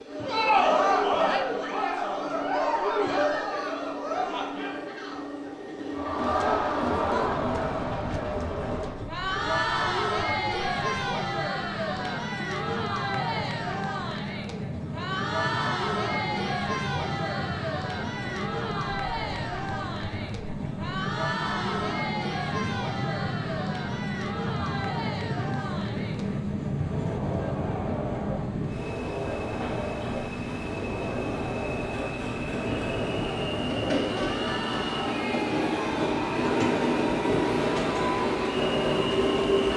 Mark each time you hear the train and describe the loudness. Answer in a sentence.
You can hear the train from 0.0 to 39.7 s, getting louder.